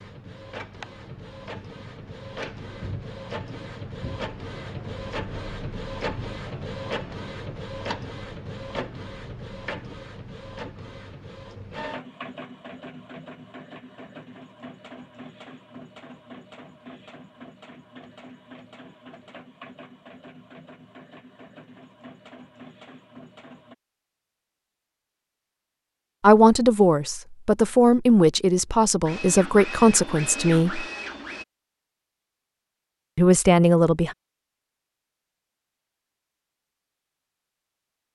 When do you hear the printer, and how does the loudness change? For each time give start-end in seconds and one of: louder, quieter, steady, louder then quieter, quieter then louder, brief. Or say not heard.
0.0-23.8 quieter
29.1-31.4 brief.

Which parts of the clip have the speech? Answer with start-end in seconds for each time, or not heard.
26.2-30.9, 33.1-34.1.